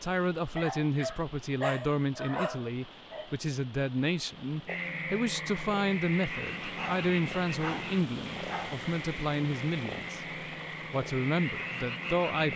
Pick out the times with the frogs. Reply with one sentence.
The frogs can be heard from 4.7 to 12.5 s.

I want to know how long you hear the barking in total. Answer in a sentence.
The barking can be heard for 5 seconds in total.